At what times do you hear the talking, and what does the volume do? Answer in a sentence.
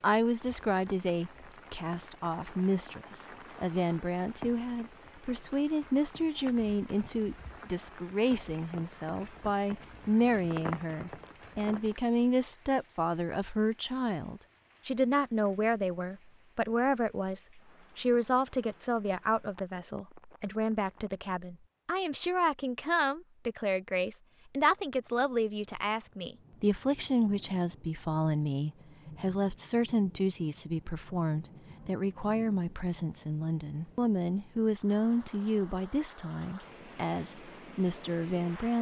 You can hear the talking from 0.0 to 38.7 s, at a steady volume.